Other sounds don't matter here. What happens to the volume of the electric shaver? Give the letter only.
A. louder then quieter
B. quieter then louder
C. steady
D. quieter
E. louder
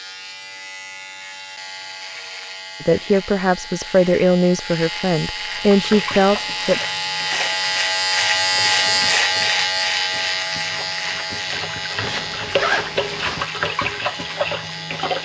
A.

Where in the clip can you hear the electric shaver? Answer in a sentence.
The electric shaver can be heard from 0.0 to 15.1 s.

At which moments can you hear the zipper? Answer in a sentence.
You can hear the zipper from 12.0 to 13.4 s.